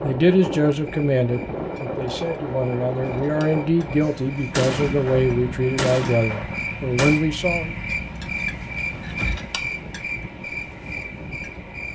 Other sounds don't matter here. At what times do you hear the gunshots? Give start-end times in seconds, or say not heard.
4.0-7.2.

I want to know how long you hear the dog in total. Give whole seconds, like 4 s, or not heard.
not heard.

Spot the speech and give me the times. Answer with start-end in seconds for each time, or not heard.
0.0-7.8.